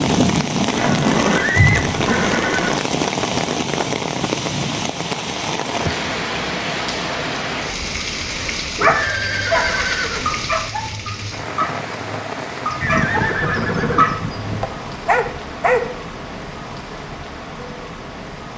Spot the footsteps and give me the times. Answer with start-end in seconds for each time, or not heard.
not heard.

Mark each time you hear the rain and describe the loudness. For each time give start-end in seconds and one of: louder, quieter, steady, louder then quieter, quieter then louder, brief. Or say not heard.
0.0-18.5 quieter.